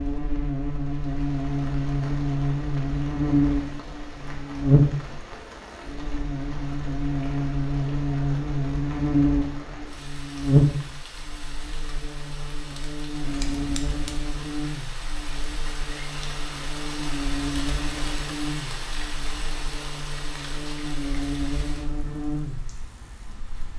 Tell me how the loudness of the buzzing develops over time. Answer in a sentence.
The volume of the buzzing goes down.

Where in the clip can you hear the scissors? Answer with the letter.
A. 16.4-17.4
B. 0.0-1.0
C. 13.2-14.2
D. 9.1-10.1
C.